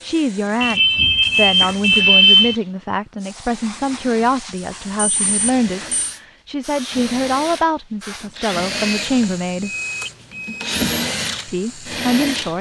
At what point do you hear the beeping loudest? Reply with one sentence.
The volume of the beeping peaks at 2 seconds.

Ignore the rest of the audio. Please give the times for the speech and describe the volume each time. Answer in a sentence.
The speech can be heard from 0.0 to 9.7 s, at a steady volume; and briefly from 11.4 to 12.5 s.